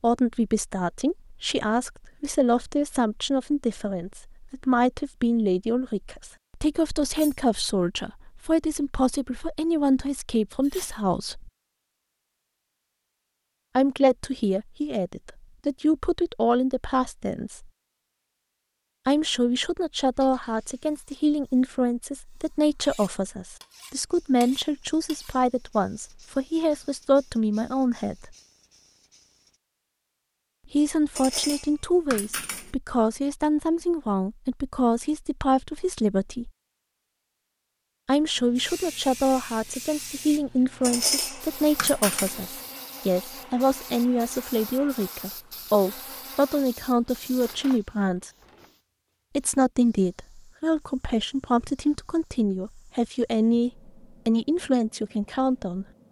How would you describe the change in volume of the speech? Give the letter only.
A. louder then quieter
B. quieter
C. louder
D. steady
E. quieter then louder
D.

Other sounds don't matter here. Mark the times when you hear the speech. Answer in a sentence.
You can hear the speech from 0.0 to 11.5 s, from 13.8 to 17.7 s, from 19.1 to 28.4 s, from 30.7 to 36.5 s, from 38.0 to 48.3 s and from 49.4 to 55.9 s.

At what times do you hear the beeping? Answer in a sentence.
You can't hear the beeping here.